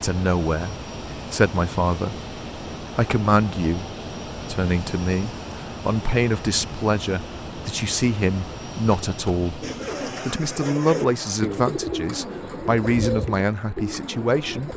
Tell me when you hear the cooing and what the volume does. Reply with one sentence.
You can hear the cooing from 9.6 to 14.7 s, getting louder then quieter.